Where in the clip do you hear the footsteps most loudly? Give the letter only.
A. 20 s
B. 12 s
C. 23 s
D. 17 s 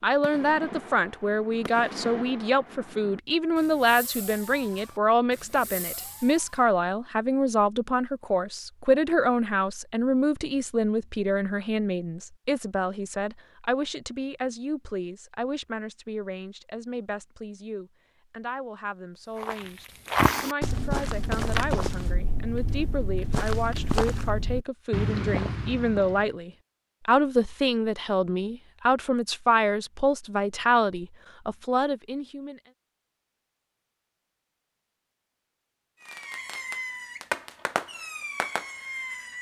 A.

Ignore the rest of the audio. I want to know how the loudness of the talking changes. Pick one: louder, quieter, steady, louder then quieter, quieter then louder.
quieter then louder.